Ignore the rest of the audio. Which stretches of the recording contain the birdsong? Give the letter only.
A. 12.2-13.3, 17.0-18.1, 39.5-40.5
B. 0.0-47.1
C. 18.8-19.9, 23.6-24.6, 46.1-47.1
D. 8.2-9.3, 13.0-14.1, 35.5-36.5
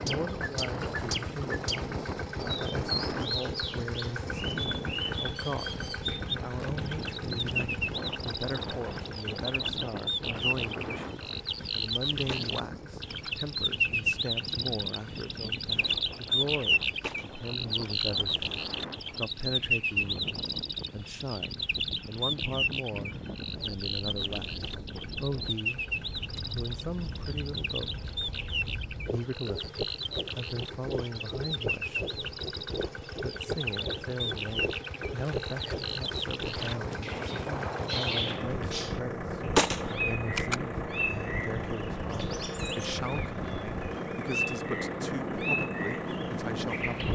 B.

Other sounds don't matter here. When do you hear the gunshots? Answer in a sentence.
The gunshots can be heard from 12.2 to 13.3 s, from 17.0 to 18.1 s and from 39.5 to 40.5 s.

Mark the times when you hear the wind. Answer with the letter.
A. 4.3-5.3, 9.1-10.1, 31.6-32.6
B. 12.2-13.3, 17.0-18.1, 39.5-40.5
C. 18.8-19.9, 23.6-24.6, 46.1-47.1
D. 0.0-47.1
D.